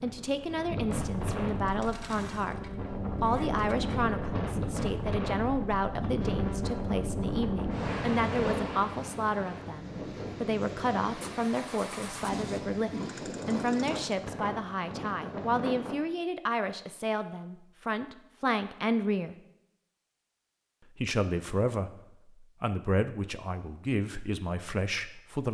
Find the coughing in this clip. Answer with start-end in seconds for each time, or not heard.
12.3-13.8.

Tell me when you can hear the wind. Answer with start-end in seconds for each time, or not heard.
0.0-15.9.